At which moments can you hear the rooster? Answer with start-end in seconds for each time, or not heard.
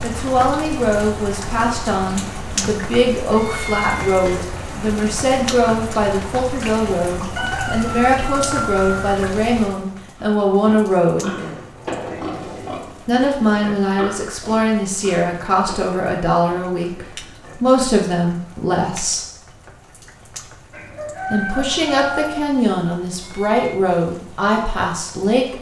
7.3-9.3, 20.7-22.4.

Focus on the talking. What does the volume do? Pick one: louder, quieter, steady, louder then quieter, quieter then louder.
steady.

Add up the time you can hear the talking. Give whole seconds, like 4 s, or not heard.
22 s.